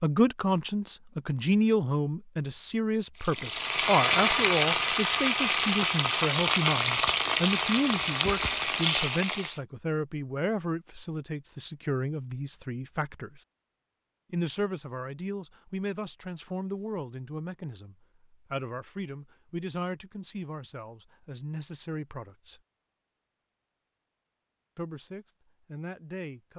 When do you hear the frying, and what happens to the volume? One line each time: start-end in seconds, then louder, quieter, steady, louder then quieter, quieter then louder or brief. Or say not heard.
3.2-9.6 steady.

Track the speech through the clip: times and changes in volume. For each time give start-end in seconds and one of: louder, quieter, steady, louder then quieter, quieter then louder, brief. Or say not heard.
0.0-13.4 quieter
14.3-22.6 steady
24.8-26.5 brief.